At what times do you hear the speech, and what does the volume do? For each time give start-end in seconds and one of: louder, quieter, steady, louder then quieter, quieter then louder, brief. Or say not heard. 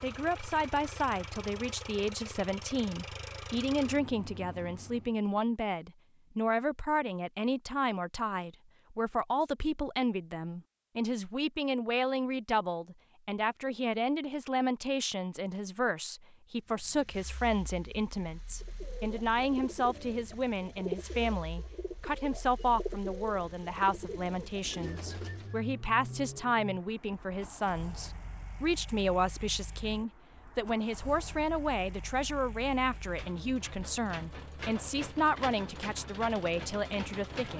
0.0-37.5 steady.